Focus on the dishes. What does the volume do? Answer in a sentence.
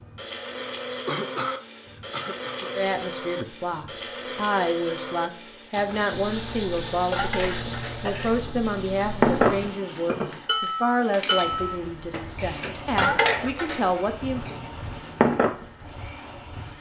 The volume of the dishes goes up, then down.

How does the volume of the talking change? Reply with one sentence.
The loudness of the talking stays about the same.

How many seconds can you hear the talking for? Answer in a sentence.
The talking can be heard for 12 seconds in total.